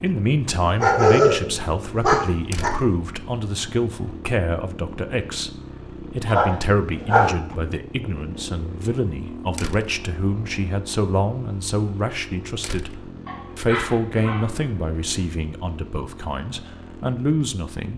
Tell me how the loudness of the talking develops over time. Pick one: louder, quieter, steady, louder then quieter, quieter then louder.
steady.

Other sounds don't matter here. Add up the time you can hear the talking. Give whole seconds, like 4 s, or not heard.
18 s.